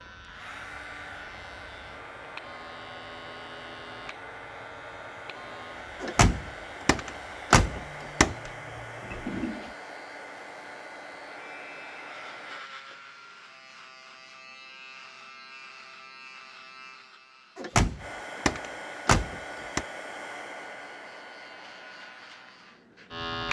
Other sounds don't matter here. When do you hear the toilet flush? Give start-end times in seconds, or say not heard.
8.4-9.8.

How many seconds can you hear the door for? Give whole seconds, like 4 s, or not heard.
5 s.